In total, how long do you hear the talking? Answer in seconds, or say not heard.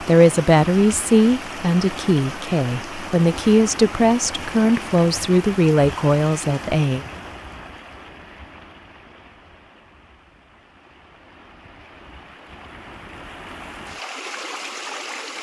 7 s.